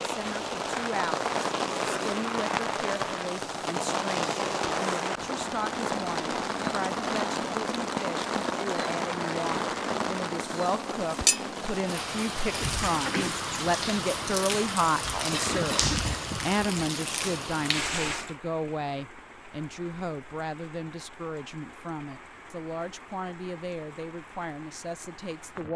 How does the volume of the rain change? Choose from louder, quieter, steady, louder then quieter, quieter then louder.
quieter.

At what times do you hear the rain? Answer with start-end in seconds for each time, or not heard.
0.0-25.7.